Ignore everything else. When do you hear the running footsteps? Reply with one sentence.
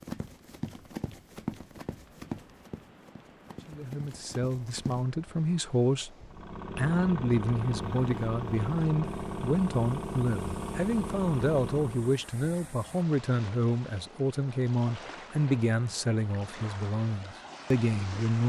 You can hear the running footsteps from 0.0 to 5.0 s.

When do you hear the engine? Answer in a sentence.
The engine can be heard from 6.2 to 12.2 s.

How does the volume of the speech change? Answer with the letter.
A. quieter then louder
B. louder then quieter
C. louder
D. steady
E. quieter
D.